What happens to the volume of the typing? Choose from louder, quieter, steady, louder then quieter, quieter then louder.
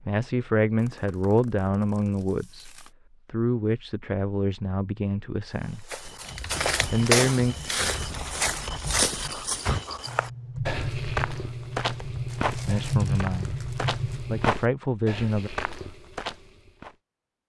louder.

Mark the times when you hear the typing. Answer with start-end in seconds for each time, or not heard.
6.0-14.5.